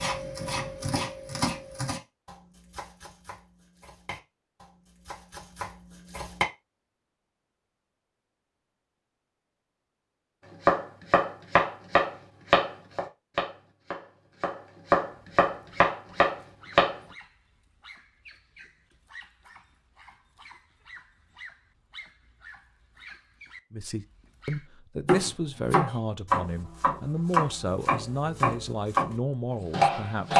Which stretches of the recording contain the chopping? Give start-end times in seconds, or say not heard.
0.0-6.5, 10.7-16.9, 25.1-30.3.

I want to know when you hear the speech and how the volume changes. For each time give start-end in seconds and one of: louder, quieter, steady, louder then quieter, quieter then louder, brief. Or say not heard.
23.7-30.3 steady.